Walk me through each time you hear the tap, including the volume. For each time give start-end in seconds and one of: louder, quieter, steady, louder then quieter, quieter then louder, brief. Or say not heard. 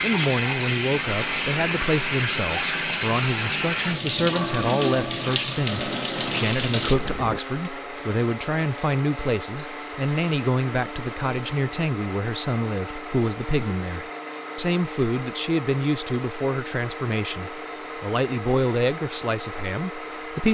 0.0-7.4 steady.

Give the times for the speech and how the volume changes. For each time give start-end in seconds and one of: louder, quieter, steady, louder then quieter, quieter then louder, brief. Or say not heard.
0.0-20.4 steady.